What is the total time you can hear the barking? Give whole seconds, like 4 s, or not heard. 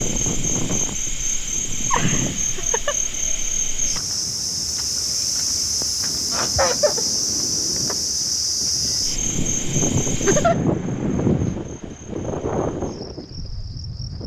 not heard.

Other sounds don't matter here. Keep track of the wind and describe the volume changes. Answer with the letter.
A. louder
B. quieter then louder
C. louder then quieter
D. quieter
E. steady
B.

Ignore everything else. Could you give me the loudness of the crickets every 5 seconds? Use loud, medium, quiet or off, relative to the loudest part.
loud, loud, quiet.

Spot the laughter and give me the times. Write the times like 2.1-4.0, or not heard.
1.9-3.0, 6.3-7.0, 10.2-10.6.